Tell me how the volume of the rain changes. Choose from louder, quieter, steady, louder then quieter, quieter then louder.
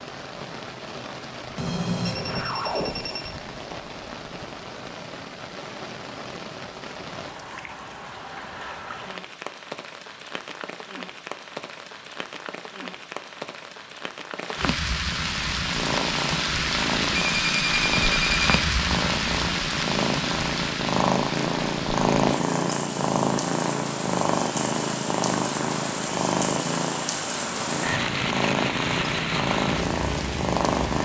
louder.